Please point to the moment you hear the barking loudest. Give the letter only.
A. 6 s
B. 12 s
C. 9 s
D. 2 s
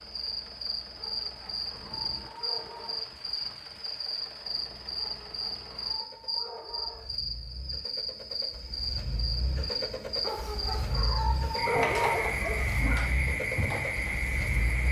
B.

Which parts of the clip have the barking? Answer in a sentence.
You can hear the barking from 0.9 to 3.2 s, from 5.0 to 7.1 s and from 10.2 to 13.2 s.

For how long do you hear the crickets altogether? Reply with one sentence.
The crickets can be heard for 15 seconds in total.